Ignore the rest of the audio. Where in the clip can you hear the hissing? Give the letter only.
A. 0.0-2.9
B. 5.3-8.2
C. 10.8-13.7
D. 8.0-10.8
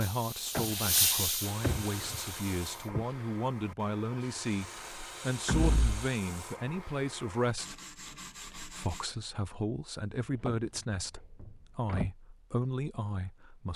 A.